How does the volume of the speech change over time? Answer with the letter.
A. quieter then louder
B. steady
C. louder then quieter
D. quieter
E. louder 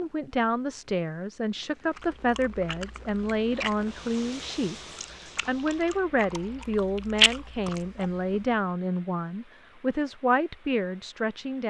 B.